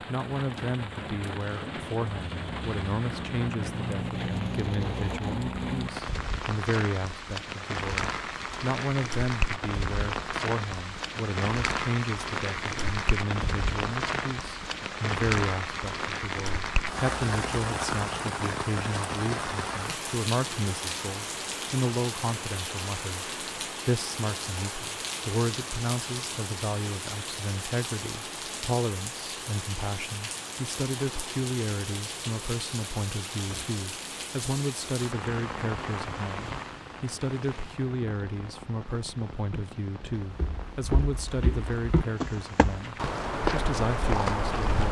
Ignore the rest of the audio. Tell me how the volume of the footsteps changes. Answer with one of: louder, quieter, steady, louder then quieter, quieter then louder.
louder.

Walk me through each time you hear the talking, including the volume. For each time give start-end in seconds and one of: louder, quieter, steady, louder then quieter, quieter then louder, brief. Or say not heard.
0.1-44.8 steady.